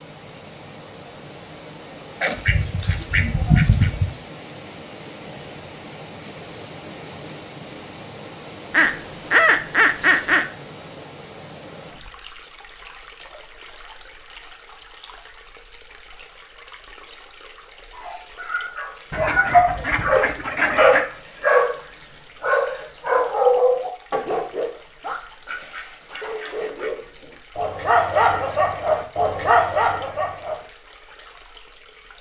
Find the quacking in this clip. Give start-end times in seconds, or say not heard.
2.2-4.0, 8.7-10.4, 19.1-21.1, 25.4-26.9.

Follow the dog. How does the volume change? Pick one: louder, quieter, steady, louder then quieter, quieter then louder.
quieter then louder.